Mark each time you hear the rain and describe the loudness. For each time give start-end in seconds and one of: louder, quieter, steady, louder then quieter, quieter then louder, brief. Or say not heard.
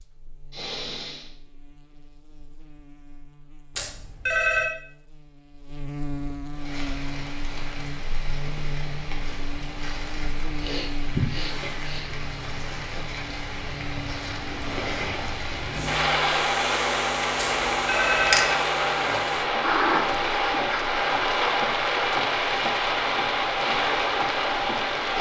6.5-25.1 louder.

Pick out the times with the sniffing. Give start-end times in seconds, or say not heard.
0.5-1.3, 10.6-12.1, 19.6-20.9.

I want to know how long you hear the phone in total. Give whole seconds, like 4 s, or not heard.
2 s.